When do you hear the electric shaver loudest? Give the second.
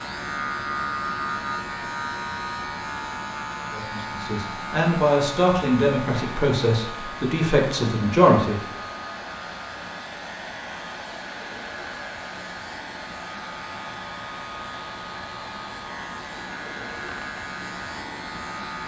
1 s.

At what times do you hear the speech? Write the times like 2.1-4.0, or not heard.
3.7-8.6.